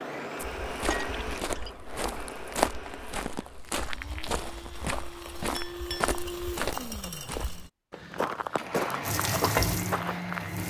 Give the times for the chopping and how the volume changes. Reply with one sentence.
You can't hear the chopping here.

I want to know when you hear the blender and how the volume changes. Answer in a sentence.
You can hear the blender from 0.0 to 10.6 s, getting quieter then louder.